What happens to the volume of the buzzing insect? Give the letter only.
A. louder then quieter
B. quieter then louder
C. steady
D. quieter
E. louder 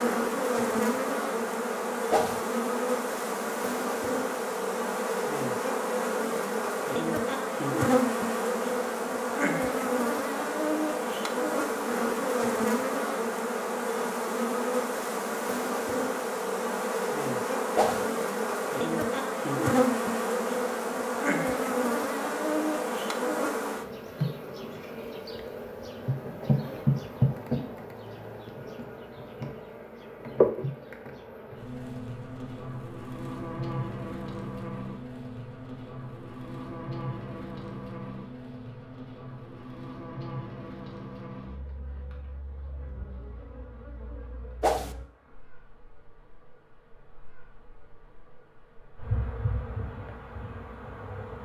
D.